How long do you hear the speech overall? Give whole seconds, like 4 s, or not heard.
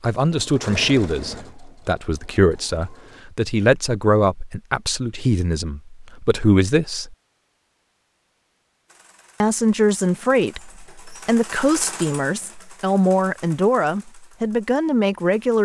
13 s.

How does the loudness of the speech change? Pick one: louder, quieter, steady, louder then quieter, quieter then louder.
steady.